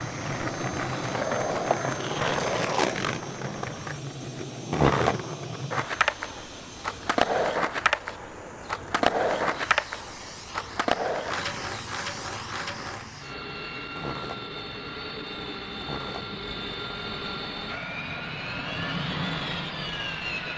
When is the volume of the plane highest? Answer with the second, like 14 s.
19 s.